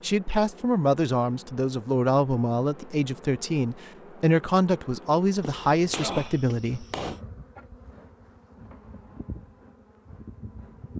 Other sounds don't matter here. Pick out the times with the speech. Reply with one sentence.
You can hear the speech from 0.0 to 6.8 s.